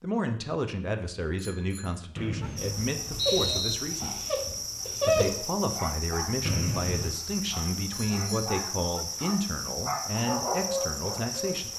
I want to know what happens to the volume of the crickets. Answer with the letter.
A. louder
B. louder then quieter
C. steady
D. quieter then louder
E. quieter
C.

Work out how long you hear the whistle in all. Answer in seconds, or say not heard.
2 s.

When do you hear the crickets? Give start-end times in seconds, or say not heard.
2.5-11.7.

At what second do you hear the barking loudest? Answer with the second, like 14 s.
5 s.